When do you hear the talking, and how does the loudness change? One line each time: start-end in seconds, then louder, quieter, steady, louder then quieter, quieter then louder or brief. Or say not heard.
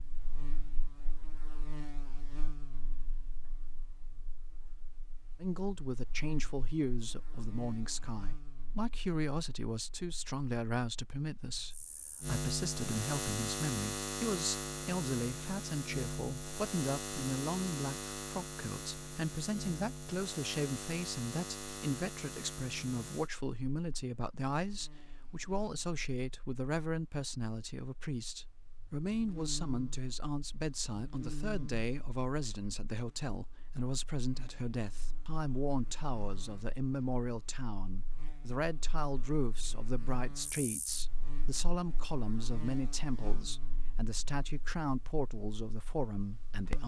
5.4-46.8 steady.